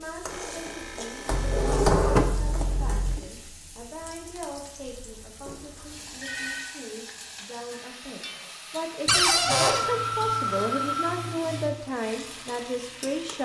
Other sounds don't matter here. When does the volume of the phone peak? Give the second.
10 s.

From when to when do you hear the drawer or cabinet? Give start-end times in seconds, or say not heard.
1.2-3.2, 9.1-9.9.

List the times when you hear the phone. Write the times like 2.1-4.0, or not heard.
0.2-1.9, 5.5-6.7, 9.4-11.8.